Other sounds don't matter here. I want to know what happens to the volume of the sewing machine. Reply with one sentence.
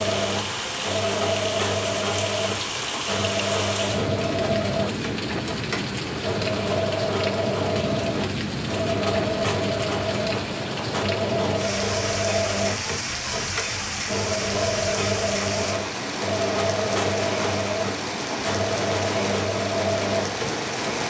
The loudness of the sewing machine stays about the same.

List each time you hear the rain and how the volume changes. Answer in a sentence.
The rain can be heard from 0.0 to 21.0 s, at a steady volume.